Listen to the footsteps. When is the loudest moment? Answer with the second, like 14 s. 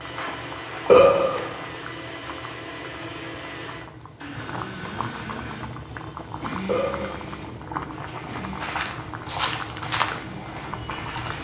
10 s.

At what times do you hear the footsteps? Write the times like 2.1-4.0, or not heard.
0.0-1.6, 7.8-11.3.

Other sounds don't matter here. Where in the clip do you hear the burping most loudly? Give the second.
1 s.